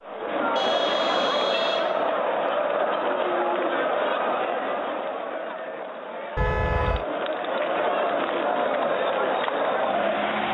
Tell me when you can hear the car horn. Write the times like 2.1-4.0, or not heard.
0.6-2.1, 6.3-7.0.